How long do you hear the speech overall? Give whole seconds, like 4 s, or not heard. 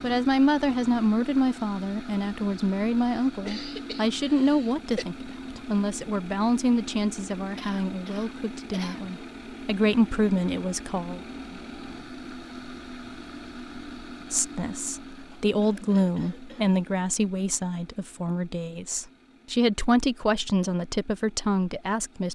19 s.